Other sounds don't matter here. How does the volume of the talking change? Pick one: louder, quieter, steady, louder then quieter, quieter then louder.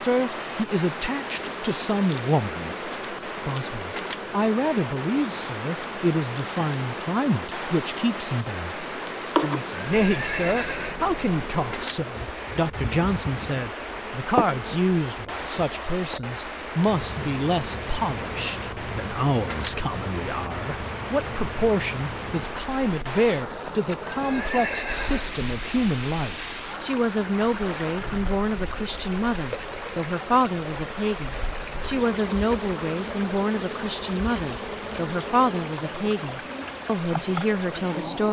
steady.